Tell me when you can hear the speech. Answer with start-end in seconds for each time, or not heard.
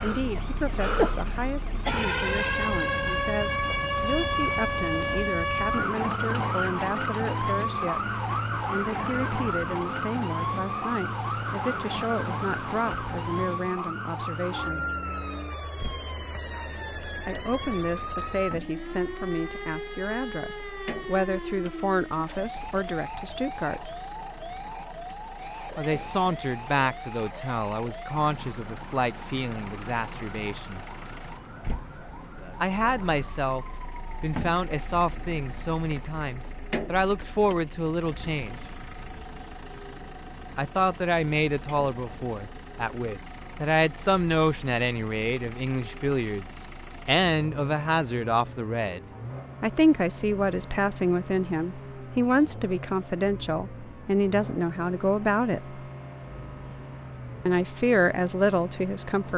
0.0-14.9, 17.2-23.9, 25.8-30.9, 32.6-38.6, 40.5-55.8, 57.5-59.3.